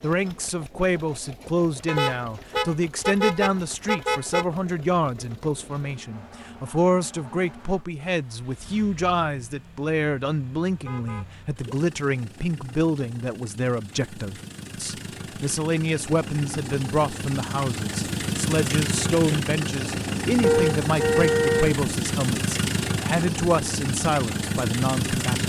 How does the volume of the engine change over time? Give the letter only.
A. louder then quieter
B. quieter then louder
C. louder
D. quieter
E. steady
C.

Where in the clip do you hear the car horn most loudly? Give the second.
21 s.